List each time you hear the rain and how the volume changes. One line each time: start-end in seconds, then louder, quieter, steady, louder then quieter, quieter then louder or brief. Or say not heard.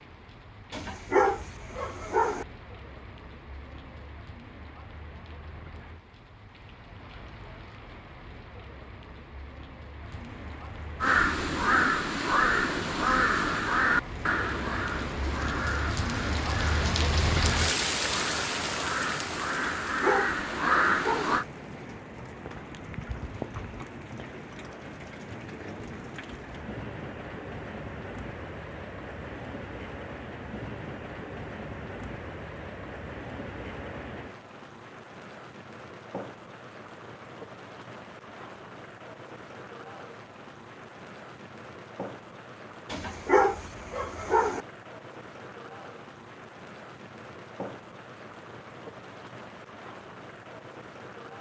0.0-51.3 louder then quieter.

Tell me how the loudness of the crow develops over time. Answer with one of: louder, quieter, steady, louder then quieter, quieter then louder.
quieter then louder.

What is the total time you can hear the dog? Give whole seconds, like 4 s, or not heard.
5 s.